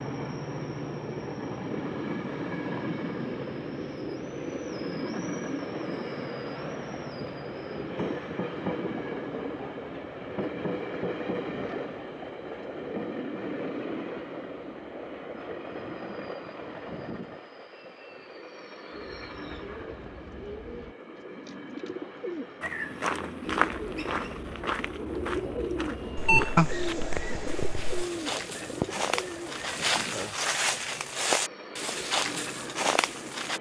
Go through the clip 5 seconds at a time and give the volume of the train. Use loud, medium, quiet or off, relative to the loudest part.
loud, loud, loud, medium, medium, medium, medium.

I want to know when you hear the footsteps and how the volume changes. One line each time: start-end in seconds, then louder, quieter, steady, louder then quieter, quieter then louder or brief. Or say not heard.
22.6-33.5 quieter then louder.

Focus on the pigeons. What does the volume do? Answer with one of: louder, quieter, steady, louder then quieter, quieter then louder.
louder then quieter.